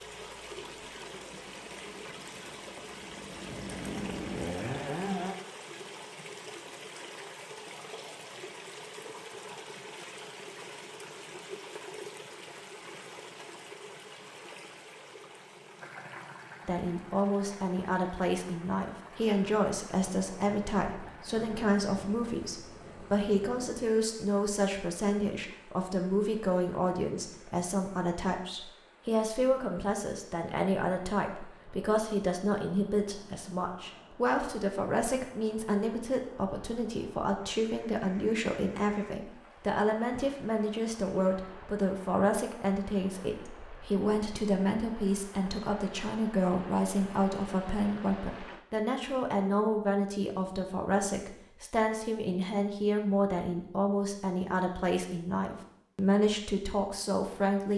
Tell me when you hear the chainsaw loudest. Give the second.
5 s.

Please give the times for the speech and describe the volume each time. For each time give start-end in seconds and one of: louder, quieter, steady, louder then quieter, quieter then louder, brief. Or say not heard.
16.6-57.7 steady.